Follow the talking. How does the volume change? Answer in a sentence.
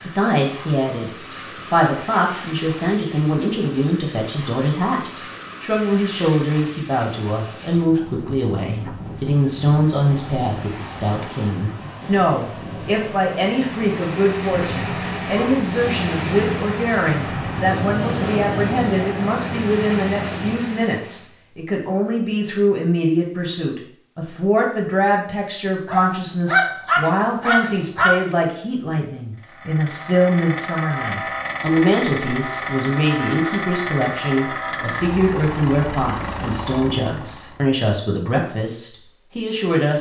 The volume of the talking stays about the same.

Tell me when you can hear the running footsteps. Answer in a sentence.
The running footsteps can't be heard in this clip.